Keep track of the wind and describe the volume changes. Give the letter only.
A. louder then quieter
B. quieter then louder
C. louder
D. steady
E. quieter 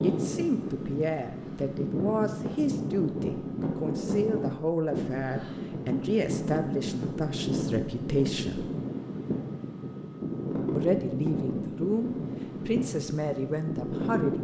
D.